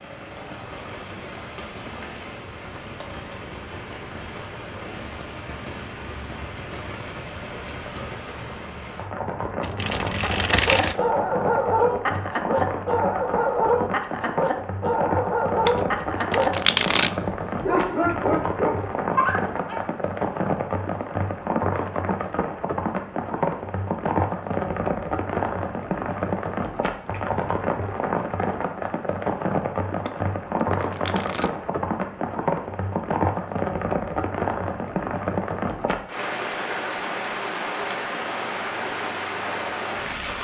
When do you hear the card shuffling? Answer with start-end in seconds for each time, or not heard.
9.4-10.9, 15.7-17.1, 30.1-31.5.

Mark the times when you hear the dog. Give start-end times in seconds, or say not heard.
10.2-19.8.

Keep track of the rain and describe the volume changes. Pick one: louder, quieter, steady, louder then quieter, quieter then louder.
louder.